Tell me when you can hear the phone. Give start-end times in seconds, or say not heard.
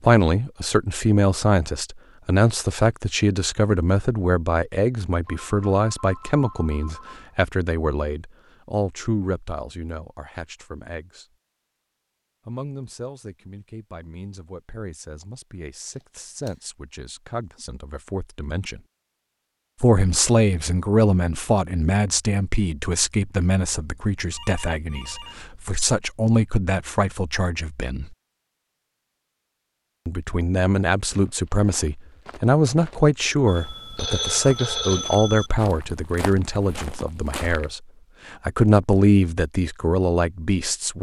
5.2-7.3, 23.8-25.8, 33.5-35.5.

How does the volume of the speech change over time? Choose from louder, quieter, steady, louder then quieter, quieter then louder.
quieter then louder.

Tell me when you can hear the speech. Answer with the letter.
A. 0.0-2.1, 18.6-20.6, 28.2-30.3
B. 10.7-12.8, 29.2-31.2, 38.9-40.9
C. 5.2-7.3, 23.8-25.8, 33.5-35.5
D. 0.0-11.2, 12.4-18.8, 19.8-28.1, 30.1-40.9
D.